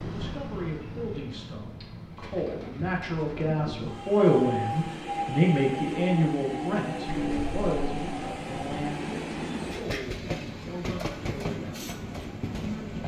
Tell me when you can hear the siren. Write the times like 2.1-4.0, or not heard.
not heard.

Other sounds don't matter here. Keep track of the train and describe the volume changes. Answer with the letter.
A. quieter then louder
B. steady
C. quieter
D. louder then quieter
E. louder
E.